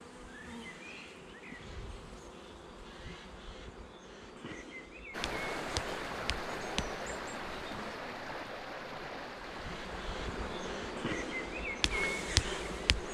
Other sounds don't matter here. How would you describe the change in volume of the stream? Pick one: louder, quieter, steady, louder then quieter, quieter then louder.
quieter.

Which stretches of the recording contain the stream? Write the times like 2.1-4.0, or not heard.
5.1-13.1.